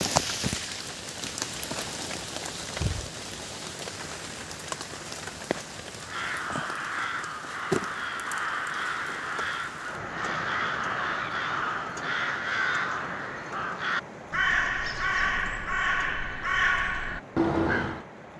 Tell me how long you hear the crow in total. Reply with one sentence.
You can hear the crow for 12 seconds altogether.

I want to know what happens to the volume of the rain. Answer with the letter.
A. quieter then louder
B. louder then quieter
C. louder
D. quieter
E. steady
D.